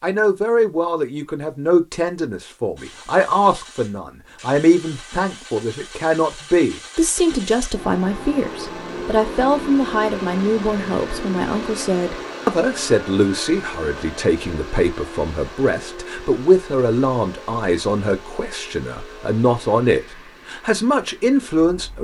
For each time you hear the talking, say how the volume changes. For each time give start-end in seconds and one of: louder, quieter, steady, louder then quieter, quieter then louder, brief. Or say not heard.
0.0-22.0 steady.